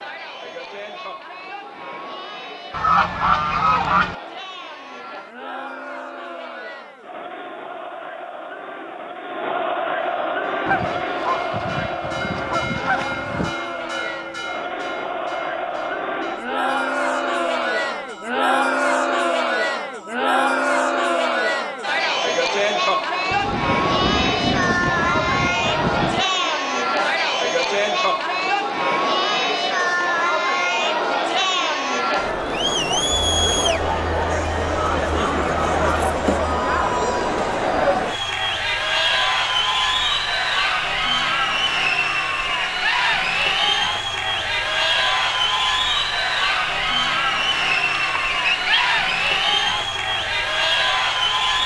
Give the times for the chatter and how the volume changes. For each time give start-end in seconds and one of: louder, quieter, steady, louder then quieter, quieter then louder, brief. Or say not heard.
0.0-51.6 louder.